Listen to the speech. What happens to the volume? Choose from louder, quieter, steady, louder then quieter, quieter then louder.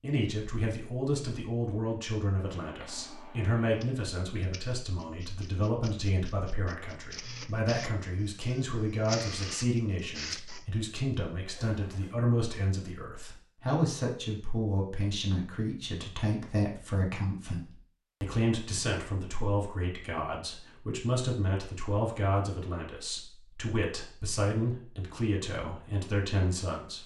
steady.